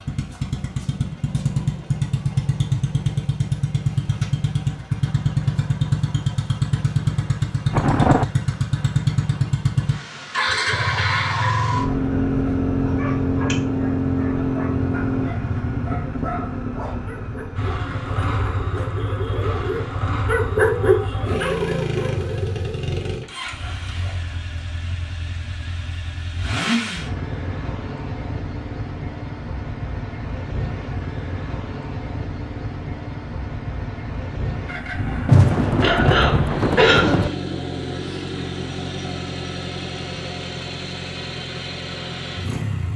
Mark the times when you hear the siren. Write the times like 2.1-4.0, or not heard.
not heard.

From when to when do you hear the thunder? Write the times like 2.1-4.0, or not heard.
7.7-8.2, 35.2-37.3.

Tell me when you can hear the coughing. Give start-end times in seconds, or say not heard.
35.8-37.4.